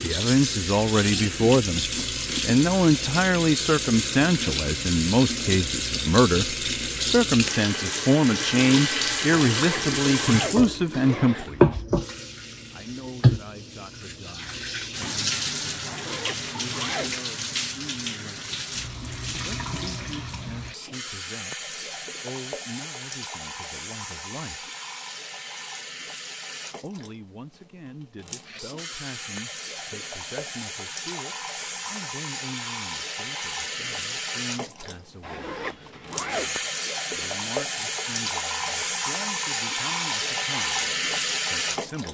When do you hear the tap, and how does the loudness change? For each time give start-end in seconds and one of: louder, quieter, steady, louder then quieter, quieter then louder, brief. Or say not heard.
0.0-42.0 quieter then louder.